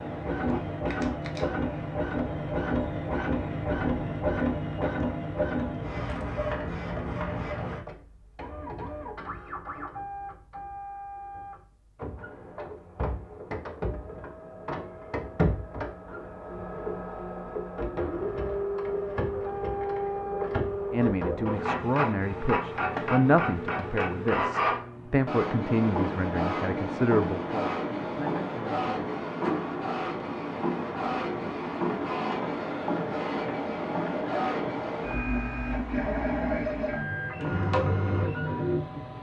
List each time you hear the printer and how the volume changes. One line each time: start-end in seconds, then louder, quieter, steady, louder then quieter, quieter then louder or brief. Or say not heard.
0.0-39.1 quieter then louder.